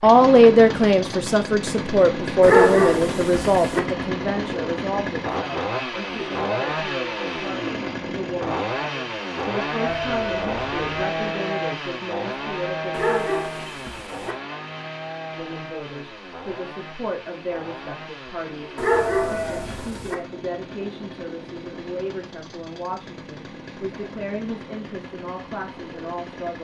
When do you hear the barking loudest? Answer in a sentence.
The loudest moment of the barking is at 3 seconds.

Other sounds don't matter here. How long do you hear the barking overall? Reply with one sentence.
You can hear the barking for 4 seconds altogether.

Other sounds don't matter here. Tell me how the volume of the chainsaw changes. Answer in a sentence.
The loudness of the chainsaw goes down.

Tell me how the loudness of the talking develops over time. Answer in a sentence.
The volume of the talking goes down.